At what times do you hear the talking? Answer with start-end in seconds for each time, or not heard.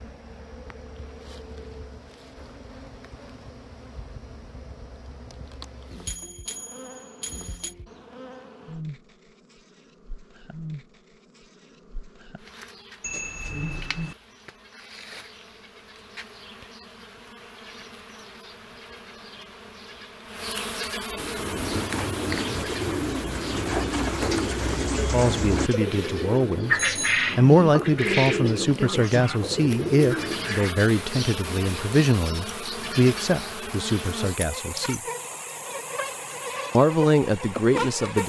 25.1-35.0, 36.7-38.2.